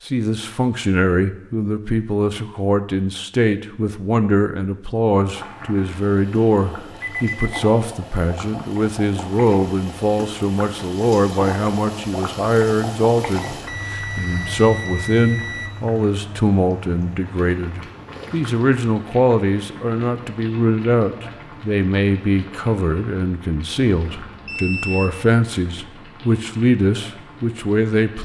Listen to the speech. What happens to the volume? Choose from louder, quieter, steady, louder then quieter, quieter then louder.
steady.